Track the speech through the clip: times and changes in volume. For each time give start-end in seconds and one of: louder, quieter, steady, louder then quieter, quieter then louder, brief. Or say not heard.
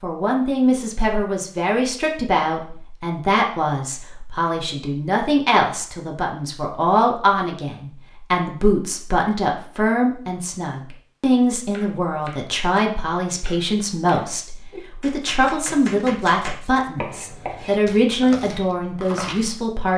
0.0-19.9 steady.